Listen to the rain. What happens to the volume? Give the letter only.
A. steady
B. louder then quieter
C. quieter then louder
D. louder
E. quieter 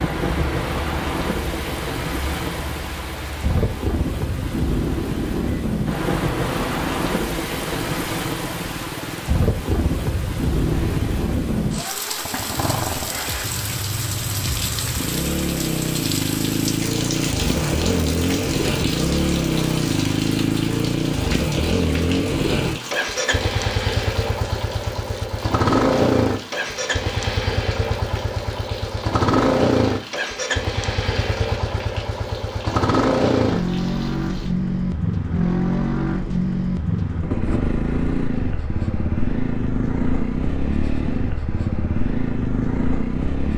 E.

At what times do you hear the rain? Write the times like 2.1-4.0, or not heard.
0.0-34.5.